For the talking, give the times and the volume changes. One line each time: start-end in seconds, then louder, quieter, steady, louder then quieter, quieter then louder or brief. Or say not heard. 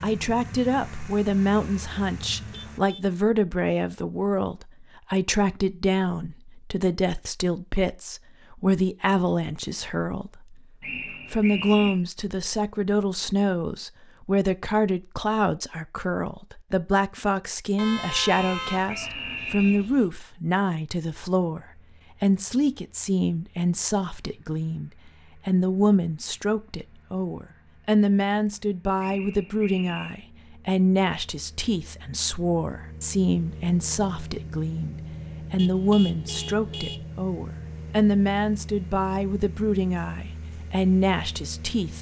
0.0-41.9 steady.